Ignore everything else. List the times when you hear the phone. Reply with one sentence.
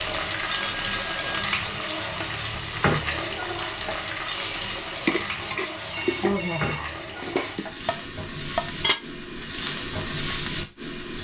The phone can be heard from 0.3 to 1.5 s and from 5.9 to 6.8 s.